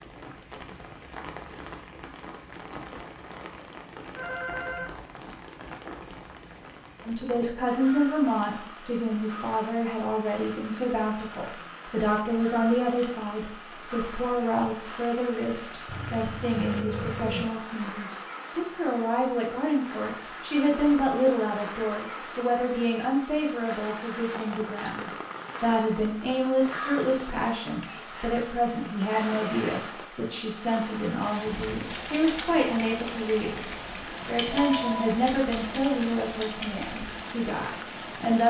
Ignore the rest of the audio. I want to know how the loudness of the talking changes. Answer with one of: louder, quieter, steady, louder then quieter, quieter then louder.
steady.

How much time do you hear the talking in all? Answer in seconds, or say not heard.
31 s.